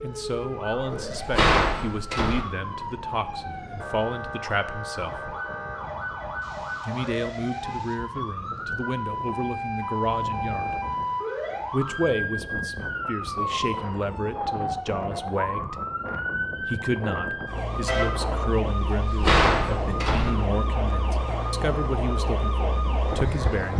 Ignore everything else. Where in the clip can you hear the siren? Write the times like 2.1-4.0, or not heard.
0.0-23.7.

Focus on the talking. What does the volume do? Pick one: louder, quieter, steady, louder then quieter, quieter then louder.
steady.